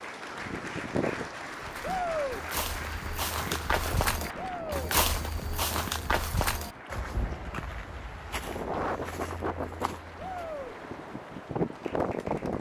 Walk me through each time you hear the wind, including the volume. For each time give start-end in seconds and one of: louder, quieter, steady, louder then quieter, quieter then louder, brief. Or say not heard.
0.0-12.5 quieter then louder.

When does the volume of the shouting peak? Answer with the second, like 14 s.
2 s.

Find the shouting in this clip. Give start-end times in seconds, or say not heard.
1.8-2.4, 4.3-4.9, 10.2-10.8.